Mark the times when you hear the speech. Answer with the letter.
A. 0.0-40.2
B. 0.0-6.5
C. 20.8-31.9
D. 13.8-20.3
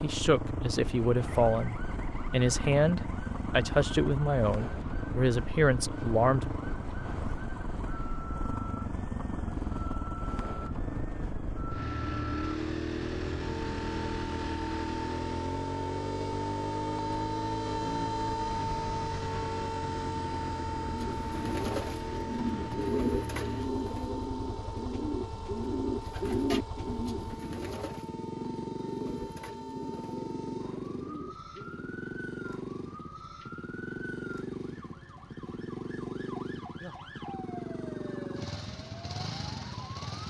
B.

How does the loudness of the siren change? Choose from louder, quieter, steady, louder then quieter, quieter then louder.
louder then quieter.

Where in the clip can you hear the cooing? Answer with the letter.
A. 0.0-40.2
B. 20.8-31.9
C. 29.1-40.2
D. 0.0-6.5
B.